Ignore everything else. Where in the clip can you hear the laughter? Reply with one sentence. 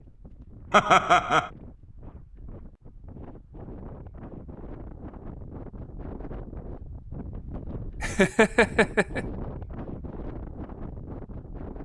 You can hear the laughter from 0.7 to 1.5 s and from 8.0 to 9.2 s.